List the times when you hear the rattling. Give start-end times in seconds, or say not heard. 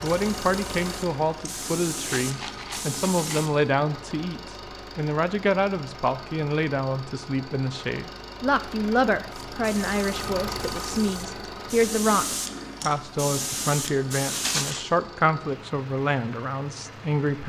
2.0-3.4, 14.3-14.9.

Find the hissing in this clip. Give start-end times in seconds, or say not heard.
0.0-3.5, 9.6-14.8.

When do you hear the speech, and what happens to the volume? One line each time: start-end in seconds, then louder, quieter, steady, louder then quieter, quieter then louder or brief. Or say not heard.
0.0-17.4 steady.